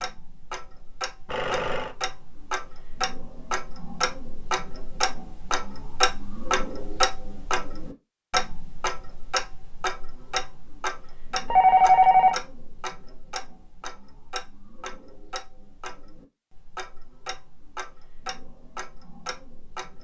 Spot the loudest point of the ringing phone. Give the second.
12 s.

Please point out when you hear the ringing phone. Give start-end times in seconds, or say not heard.
1.2-1.9, 11.5-12.3.